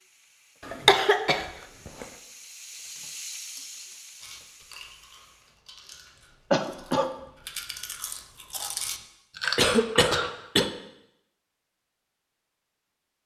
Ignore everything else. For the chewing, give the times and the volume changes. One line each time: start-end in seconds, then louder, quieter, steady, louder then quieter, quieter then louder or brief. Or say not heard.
4.2-10.3 louder.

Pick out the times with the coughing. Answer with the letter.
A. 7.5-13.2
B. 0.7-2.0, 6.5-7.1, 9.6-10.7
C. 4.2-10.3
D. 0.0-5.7
B.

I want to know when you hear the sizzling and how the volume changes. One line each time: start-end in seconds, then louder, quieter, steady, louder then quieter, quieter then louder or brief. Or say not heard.
0.0-5.7 louder then quieter.